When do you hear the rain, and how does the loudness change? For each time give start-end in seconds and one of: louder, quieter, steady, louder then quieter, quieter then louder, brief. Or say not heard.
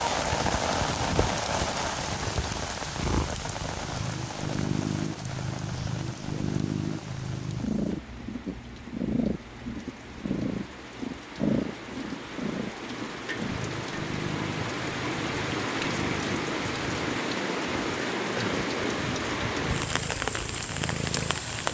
0.0-21.6 quieter then louder.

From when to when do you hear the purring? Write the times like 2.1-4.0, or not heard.
0.1-21.6.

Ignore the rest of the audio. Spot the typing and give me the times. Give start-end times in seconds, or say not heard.
not heard.